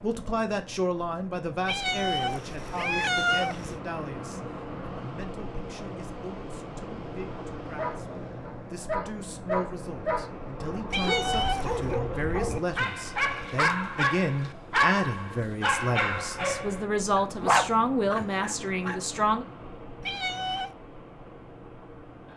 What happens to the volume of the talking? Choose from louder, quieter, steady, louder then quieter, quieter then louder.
quieter then louder.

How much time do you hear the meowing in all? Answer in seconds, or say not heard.
4 s.